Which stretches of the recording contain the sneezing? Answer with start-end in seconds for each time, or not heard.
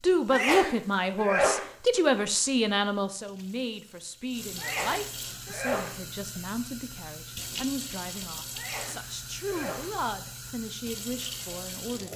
0.3-1.7, 4.5-6.0, 8.6-9.9.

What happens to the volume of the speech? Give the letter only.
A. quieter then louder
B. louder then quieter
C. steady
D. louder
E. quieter
E.